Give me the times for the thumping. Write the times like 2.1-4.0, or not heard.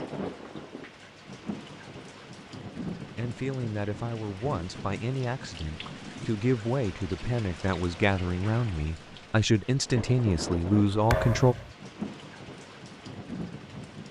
11.1-11.8.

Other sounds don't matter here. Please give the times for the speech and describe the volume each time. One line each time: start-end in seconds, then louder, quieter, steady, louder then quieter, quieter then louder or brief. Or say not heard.
3.1-11.6 louder.